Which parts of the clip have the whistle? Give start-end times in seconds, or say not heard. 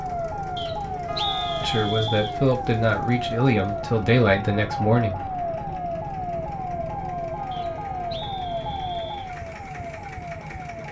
0.6-2.4, 7.5-9.3.